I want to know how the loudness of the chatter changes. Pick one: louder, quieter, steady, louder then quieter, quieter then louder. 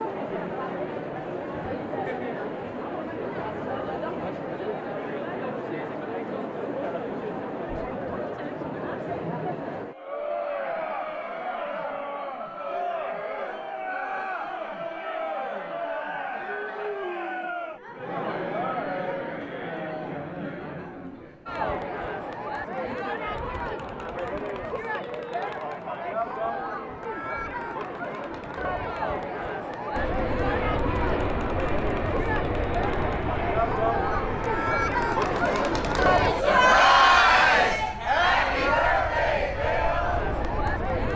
louder.